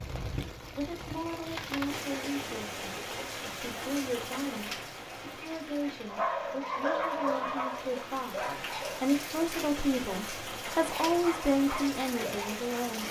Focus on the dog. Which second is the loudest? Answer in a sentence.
The volume of the dog peaks at 7 seconds.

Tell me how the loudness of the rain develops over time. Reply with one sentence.
The volume of the rain goes down, then up.